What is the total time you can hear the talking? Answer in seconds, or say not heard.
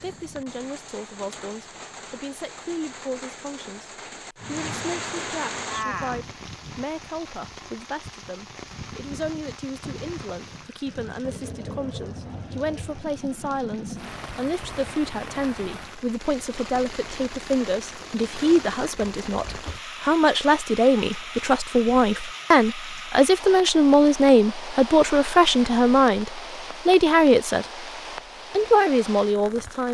29 s.